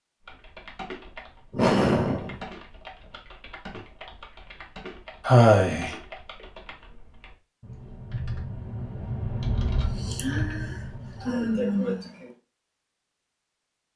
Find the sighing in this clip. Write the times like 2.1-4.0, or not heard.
1.5-2.4, 5.2-6.0, 10.1-12.1.